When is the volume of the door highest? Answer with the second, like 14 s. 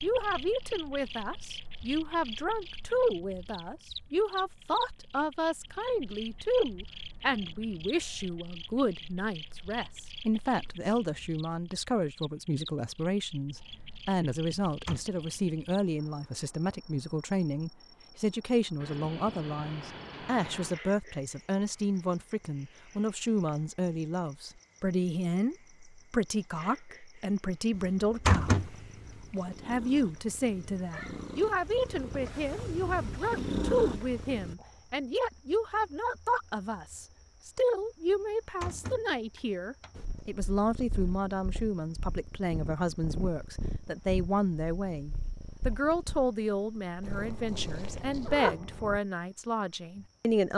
28 s.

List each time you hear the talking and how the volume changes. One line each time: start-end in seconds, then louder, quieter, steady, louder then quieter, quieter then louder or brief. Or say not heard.
0.0-50.5 steady.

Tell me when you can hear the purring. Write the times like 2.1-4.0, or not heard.
28.4-34.5, 40.0-49.0.